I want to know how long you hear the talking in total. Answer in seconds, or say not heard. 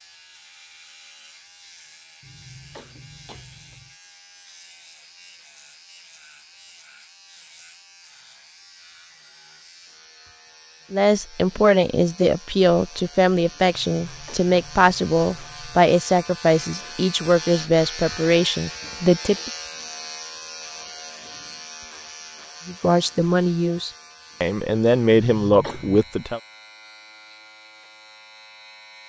12 s.